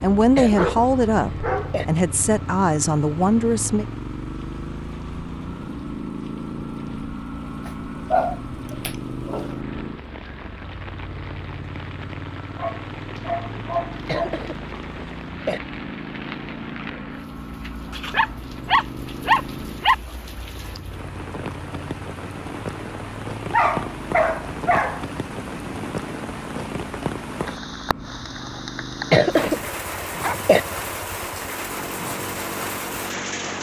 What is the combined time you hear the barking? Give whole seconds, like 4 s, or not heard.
9 s.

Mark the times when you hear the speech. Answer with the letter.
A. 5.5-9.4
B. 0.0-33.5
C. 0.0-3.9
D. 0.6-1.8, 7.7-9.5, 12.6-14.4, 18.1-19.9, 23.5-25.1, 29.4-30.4
C.